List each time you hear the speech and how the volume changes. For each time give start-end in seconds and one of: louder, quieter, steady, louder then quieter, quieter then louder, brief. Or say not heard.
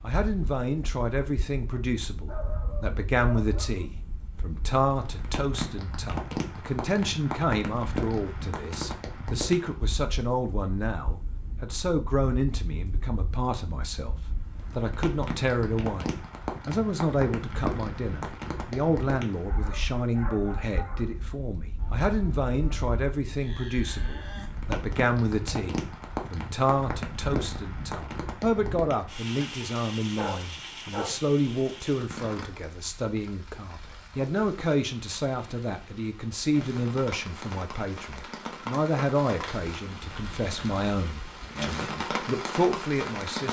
0.0-43.4 steady.